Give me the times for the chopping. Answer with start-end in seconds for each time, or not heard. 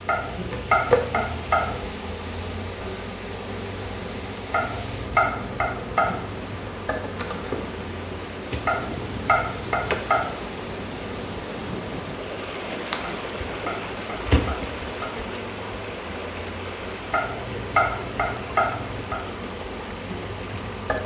0.1-1.8, 4.5-6.2, 8.7-10.3, 13.1-15.2, 17.1-19.1.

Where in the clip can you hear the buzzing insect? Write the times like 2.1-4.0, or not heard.
0.0-21.0.